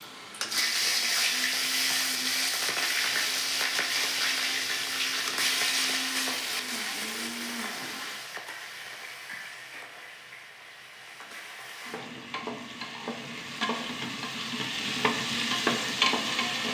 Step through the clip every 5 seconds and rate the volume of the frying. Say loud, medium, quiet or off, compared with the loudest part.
loud, medium, medium, loud.